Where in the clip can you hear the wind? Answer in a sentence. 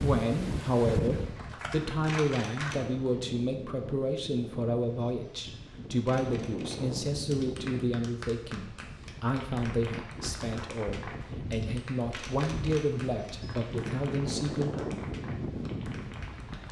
The wind can be heard from 0.0 to 16.6 s.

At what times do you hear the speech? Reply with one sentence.
The speech can be heard from 0.0 to 14.7 s.